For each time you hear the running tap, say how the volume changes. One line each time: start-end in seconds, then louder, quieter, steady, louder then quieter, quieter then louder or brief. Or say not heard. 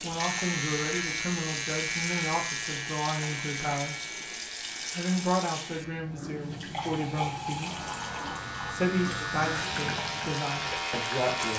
0.0-11.5 steady.